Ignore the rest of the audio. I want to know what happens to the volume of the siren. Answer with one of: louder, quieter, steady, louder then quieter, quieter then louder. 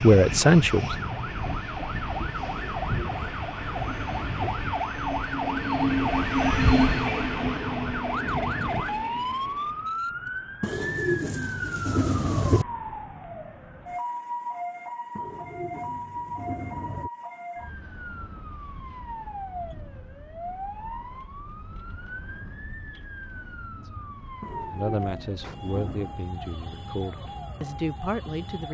quieter.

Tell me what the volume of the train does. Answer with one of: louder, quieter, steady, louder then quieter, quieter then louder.
louder then quieter.